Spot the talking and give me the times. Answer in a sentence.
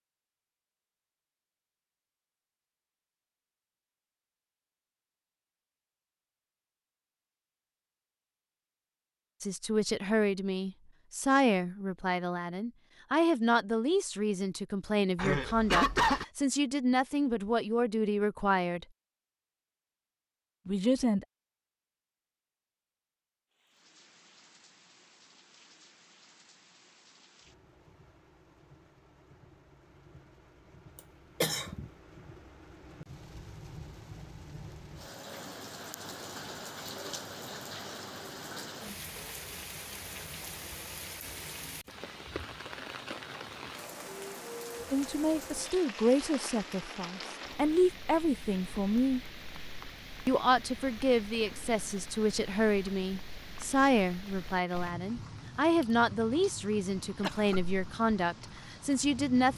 The talking can be heard from 9.4 to 18.9 s, from 20.6 to 21.2 s, from 44.9 to 49.2 s and from 50.2 to 59.5 s.